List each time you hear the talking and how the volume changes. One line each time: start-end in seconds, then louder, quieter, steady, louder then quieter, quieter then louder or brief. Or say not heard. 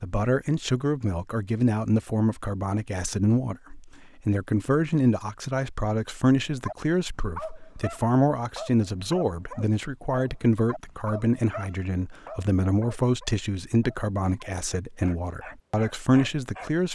0.0-16.9 steady.